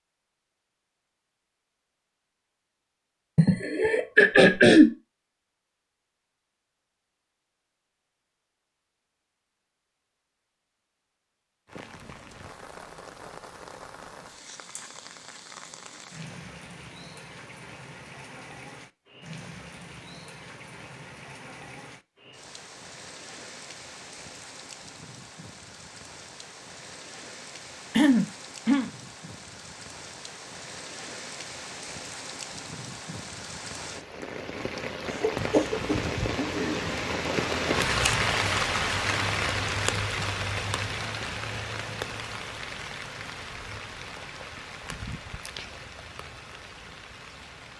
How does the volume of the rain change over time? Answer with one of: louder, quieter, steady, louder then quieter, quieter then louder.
louder then quieter.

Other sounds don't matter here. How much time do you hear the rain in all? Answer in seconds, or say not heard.
36 s.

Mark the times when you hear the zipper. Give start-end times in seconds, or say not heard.
not heard.